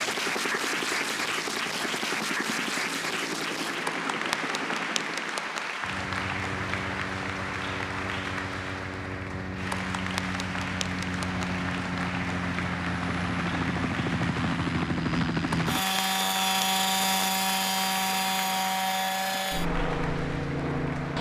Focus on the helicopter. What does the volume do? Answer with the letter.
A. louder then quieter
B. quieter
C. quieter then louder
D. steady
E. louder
E.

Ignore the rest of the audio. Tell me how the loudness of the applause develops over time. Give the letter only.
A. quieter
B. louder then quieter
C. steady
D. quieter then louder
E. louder
A.